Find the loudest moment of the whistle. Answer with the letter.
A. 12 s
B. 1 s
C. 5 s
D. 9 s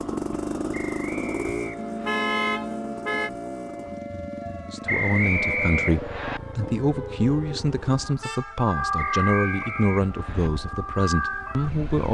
C.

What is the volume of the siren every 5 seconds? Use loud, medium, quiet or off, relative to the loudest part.
medium, loud, loud.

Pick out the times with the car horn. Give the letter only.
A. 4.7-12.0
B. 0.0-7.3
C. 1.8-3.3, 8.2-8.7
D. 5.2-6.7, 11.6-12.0
C.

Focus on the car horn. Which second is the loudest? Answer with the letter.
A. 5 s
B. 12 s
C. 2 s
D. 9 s
C.